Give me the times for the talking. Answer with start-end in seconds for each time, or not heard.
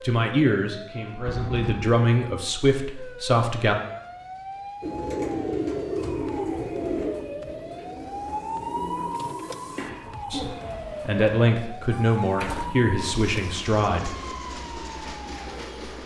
0.0-3.8, 10.3-14.1.